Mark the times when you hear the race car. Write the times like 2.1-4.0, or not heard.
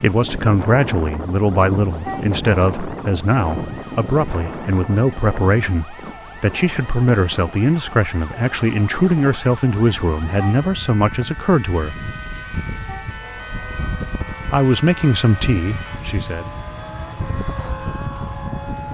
13.2-18.9.